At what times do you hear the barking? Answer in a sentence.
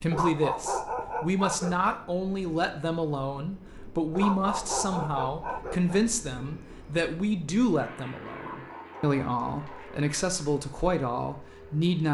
The barking can be heard from 0.1 to 2.0 s, from 4.2 to 6.0 s and from 8.3 to 10.0 s.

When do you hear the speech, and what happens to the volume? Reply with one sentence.
You can hear the speech from 0.0 to 12.0 s, at a steady volume.